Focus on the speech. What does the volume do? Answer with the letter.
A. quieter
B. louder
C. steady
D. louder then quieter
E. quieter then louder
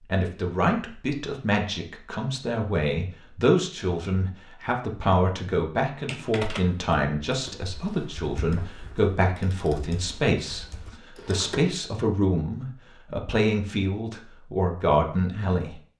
C.